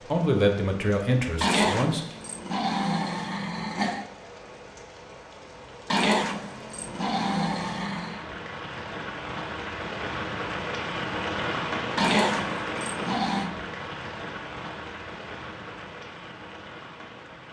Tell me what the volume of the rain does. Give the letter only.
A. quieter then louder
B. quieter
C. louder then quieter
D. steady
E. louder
C.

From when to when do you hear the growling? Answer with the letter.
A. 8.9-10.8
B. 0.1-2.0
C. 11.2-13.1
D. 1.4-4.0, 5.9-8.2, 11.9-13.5
D.